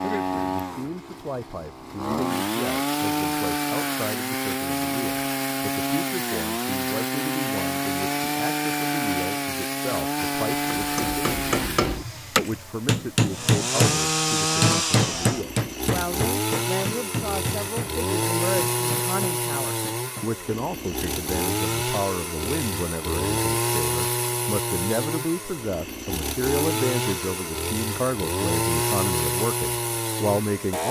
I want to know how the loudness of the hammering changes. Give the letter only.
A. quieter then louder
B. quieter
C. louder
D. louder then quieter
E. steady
B.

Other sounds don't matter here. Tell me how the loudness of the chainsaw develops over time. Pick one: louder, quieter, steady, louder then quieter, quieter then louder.
steady.